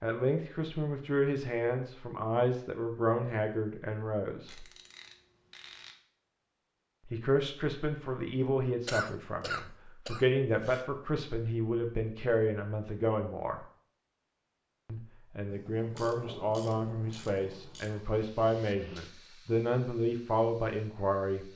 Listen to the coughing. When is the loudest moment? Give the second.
9 s.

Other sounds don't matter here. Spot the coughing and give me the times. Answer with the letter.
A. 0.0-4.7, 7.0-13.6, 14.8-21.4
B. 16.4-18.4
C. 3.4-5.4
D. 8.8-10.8
D.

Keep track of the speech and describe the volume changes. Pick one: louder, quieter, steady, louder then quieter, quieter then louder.
steady.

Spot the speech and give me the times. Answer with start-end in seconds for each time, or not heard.
0.0-4.7, 7.0-13.6, 14.8-21.4.